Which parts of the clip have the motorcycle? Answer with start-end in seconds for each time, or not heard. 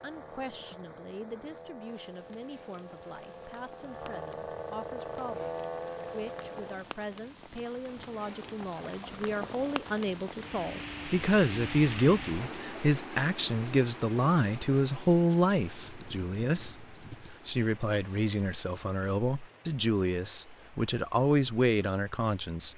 0.0-6.8.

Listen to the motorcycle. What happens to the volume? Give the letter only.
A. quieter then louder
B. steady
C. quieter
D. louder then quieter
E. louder
E.